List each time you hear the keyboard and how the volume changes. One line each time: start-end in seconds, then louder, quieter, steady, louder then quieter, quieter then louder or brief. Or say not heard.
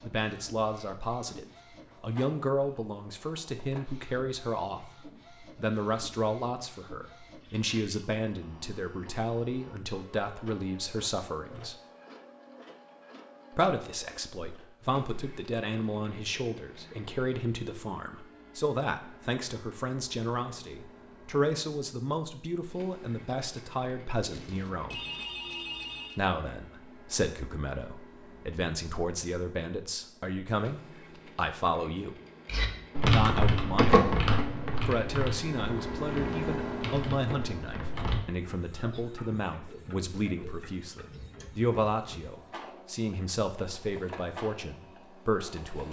32.5-38.2 quieter then louder.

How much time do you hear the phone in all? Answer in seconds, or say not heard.
2 s.